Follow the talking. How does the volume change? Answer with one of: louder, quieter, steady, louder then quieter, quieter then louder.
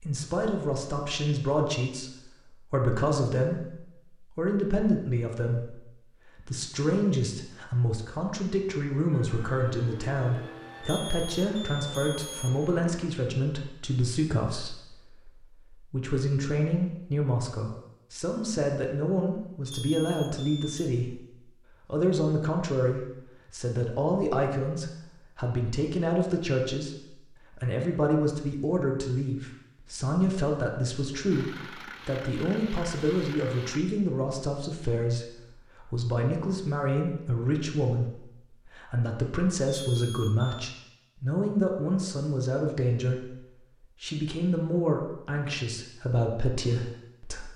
steady.